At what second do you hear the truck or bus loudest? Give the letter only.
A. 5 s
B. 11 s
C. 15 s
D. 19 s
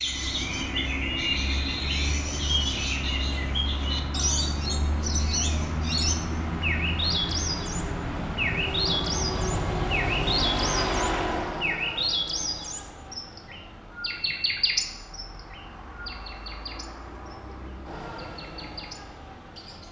B.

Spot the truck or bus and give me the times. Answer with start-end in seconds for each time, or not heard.
0.0-19.8.